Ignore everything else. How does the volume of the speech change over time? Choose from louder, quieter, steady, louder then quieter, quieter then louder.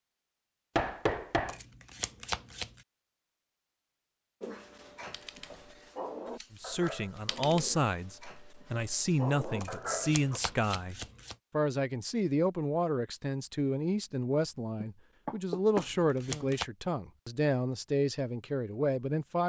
steady.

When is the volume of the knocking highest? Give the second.
1 s.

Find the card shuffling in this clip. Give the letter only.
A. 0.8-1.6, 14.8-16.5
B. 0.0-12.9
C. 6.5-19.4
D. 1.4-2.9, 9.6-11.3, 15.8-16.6
D.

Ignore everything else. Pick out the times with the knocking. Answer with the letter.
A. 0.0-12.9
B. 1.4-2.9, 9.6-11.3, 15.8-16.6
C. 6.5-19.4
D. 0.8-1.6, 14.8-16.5
D.